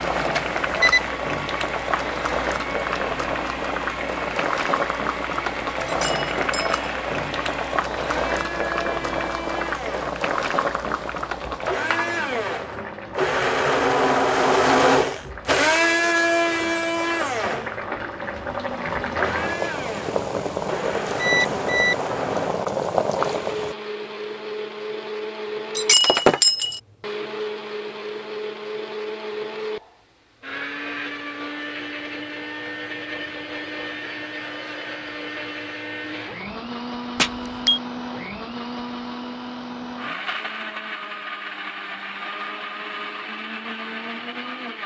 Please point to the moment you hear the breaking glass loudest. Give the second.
26 s.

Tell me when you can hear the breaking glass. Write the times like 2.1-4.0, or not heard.
5.8-6.8, 25.8-26.8.